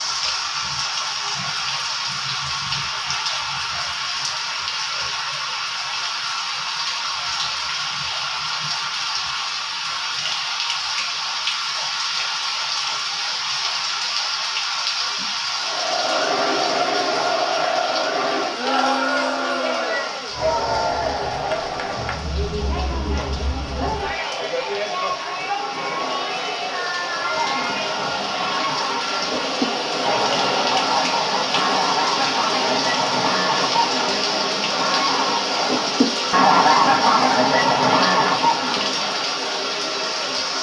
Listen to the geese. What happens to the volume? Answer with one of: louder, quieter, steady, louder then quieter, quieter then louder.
louder.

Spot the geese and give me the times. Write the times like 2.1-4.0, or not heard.
27.2-39.2.